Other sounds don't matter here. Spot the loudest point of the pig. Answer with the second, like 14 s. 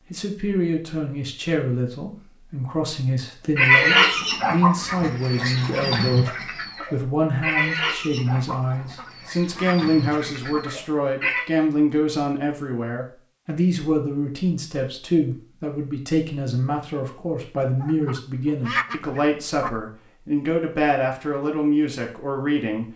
4 s.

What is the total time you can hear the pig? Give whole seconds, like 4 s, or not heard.
8 s.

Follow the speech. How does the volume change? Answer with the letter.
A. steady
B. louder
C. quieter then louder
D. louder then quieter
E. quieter
A.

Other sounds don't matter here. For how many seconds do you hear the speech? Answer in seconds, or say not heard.
23 s.